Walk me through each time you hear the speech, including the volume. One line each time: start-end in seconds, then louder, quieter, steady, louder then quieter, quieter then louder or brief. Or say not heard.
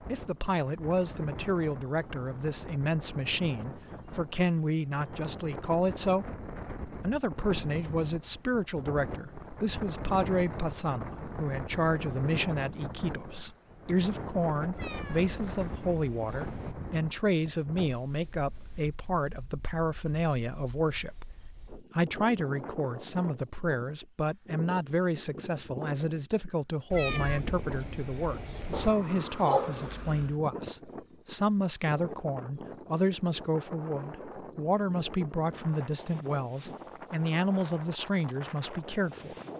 0.1-39.4 steady.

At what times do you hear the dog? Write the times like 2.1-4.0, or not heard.
28.7-30.4.